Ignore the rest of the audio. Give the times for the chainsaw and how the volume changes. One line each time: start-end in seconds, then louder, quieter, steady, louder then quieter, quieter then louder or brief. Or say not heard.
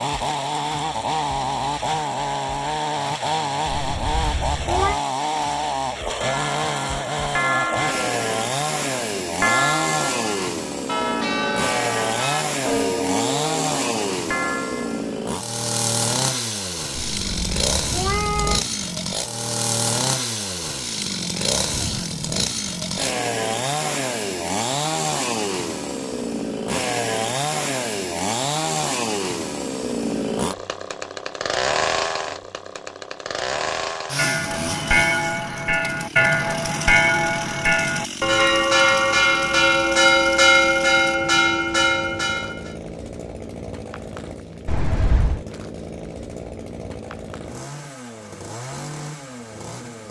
0.0-50.0 quieter.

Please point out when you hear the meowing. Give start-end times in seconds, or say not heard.
3.7-5.0, 16.9-18.6, 44.6-45.5.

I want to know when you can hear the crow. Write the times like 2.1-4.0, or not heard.
not heard.